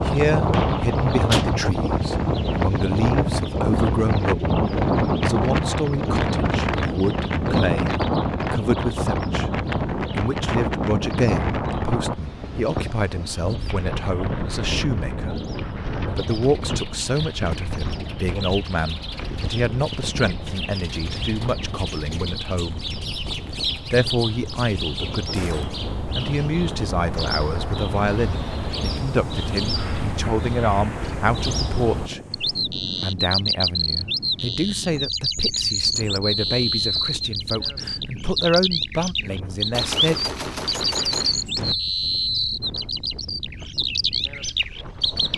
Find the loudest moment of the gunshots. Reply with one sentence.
The loudest moment of the gunshots is at 1 second.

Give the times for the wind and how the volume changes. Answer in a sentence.
You can hear the wind from 0.0 to 45.3 s, getting quieter.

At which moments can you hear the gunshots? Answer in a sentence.
The gunshots can be heard from 0.5 to 1.5 s, from 25.3 to 25.9 s and from 39.7 to 41.8 s.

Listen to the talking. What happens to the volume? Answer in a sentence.
The volume of the talking stays about the same.